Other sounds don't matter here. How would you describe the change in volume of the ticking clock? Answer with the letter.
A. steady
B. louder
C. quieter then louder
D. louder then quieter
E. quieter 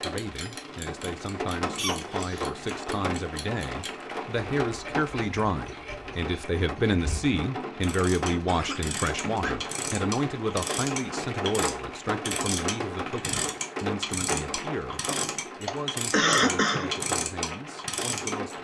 B.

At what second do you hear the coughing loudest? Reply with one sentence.
The loudest moment of the coughing is at 16 seconds.